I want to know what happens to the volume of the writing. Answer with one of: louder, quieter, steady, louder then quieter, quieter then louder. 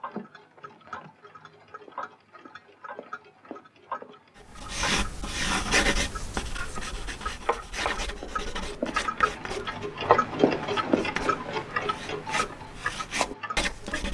quieter then louder.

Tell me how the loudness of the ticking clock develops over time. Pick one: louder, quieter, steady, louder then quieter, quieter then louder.
louder then quieter.